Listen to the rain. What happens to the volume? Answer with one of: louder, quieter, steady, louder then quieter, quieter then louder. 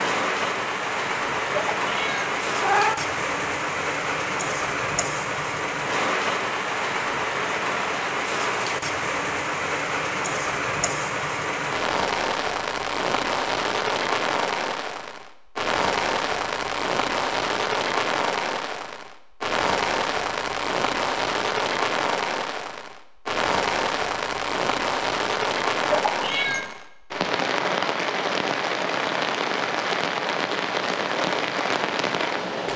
steady.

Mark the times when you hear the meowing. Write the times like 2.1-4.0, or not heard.
1.8-3.0, 25.9-26.8.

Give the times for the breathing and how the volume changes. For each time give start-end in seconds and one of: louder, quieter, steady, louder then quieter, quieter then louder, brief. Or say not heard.
not heard.